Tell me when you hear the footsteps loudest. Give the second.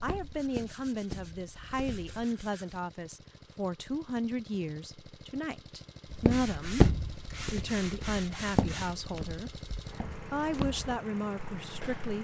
7 s.